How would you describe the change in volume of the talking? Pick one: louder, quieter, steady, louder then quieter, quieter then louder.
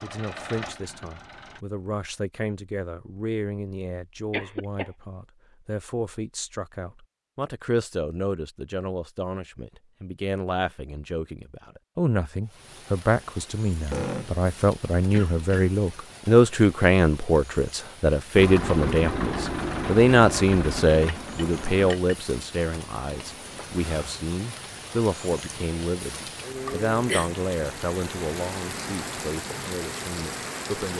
louder then quieter.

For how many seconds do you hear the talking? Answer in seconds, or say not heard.
31 s.